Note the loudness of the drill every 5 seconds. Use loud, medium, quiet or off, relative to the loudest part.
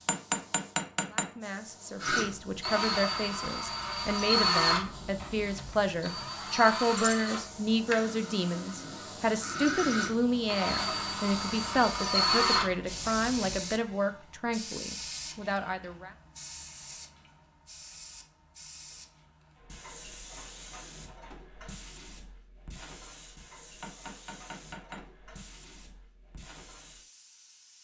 loud, medium, loud, off, off, off.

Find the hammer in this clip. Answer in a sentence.
You can hear the hammer from 0.1 to 1.3 s and from 23.8 to 25.0 s.